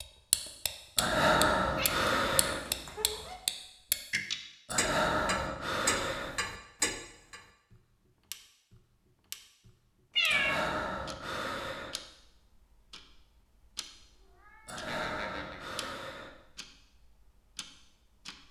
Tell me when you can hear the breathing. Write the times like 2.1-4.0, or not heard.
0.9-2.6, 4.7-6.3, 10.2-11.9, 14.7-16.3.